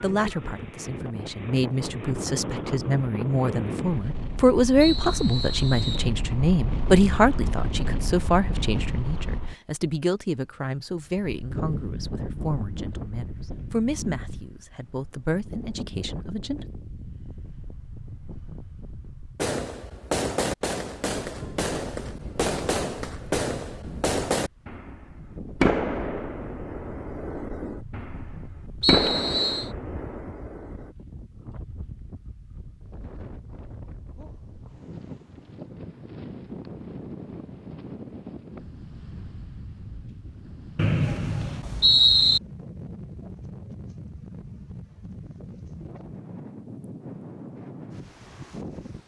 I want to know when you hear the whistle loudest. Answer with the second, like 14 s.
42 s.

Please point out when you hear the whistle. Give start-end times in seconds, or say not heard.
4.8-6.1, 28.8-29.7, 40.8-42.4.